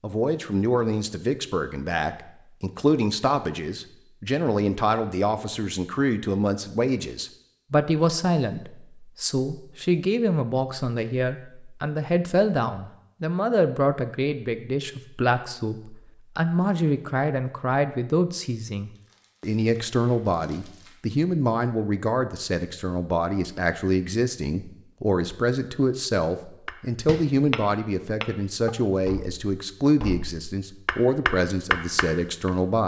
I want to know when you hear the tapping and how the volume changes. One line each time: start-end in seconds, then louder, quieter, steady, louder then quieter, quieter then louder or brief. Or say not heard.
26.6-32.5 quieter then louder.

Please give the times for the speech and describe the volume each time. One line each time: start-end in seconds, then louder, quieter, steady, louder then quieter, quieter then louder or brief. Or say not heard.
0.0-32.8 steady.